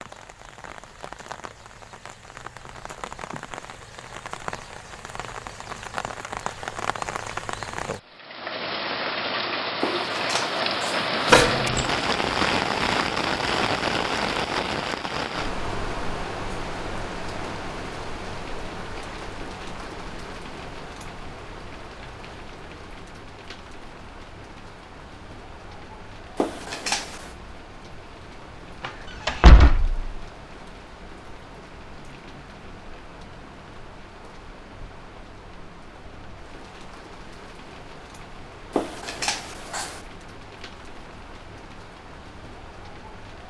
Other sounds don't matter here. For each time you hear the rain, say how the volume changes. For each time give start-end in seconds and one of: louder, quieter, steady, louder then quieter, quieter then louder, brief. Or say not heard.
0.0-43.4 louder then quieter.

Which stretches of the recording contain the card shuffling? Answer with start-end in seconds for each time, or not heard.
9.8-11.7, 26.4-27.4, 38.7-40.0.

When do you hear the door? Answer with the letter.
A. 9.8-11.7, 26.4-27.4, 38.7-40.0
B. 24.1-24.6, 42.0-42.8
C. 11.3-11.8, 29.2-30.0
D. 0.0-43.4
C.